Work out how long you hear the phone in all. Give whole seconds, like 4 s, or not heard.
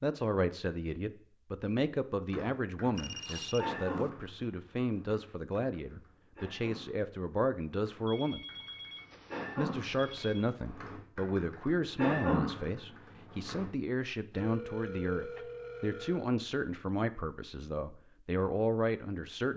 6 s.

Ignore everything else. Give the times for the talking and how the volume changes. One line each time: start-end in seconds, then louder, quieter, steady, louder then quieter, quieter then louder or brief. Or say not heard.
0.0-8.4 steady
9.6-19.5 steady.